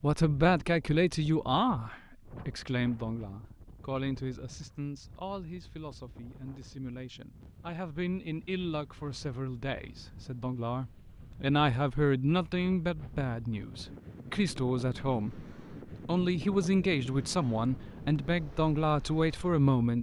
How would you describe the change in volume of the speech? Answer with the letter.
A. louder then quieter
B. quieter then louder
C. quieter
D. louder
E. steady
B.